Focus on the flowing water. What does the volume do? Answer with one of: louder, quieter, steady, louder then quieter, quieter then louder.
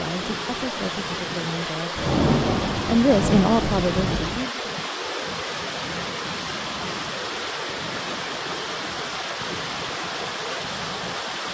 steady.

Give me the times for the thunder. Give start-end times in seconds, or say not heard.
1.9-4.5.